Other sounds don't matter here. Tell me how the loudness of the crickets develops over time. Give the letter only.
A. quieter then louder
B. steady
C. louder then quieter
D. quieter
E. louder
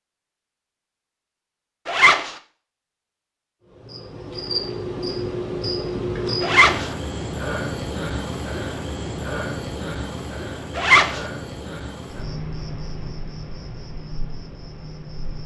D.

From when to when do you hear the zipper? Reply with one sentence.
The zipper can be heard from 1.9 to 2.4 s, from 6.4 to 6.9 s and from 10.8 to 11.2 s.